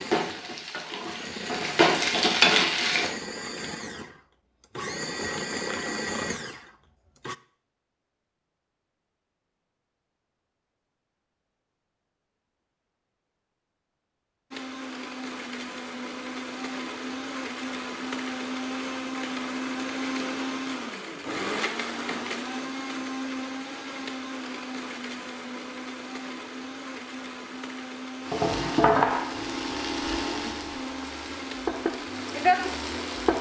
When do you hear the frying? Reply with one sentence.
The frying can be heard from 0.0 to 3.1 s and from 28.2 to 33.3 s.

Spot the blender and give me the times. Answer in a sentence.
The blender can be heard from 0.0 to 7.3 s and from 14.5 to 33.3 s.